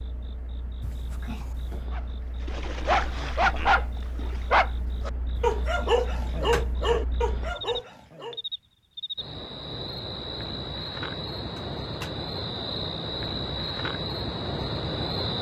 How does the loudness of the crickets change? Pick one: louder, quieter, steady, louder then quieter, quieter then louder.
louder.